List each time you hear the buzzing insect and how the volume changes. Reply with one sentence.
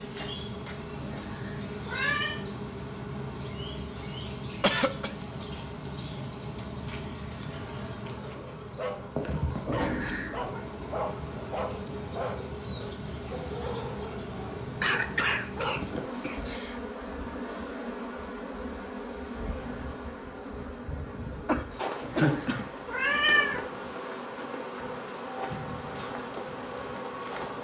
You can hear the buzzing insect from 0.0 to 27.5 s, at a steady volume.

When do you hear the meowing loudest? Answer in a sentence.
The volume of the meowing peaks at 23 seconds.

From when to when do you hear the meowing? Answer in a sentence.
You can hear the meowing from 1.0 to 2.4 s, from 9.7 to 10.6 s and from 22.0 to 23.6 s.